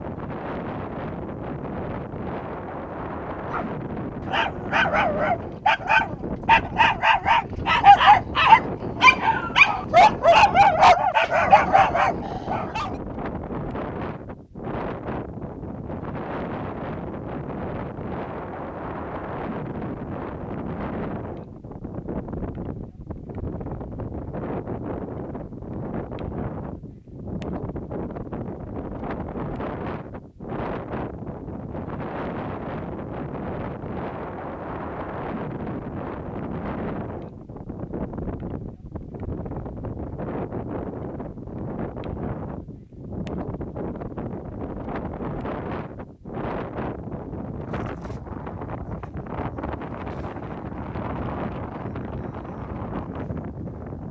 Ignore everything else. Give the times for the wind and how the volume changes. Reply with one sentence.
The wind can be heard from 0.0 to 54.0 s, at a steady volume.